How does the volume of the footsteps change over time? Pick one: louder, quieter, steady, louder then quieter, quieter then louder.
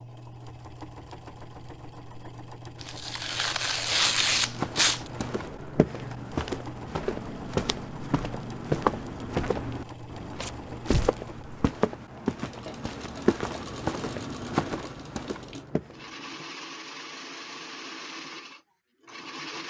steady.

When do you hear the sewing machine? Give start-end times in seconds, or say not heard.
0.0-19.6.